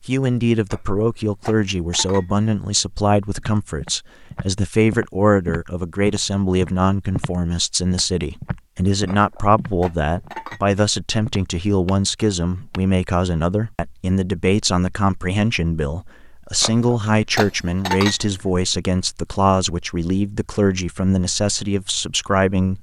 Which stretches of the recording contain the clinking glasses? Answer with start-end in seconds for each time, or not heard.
0.7-2.5, 9.1-10.6, 16.6-18.4.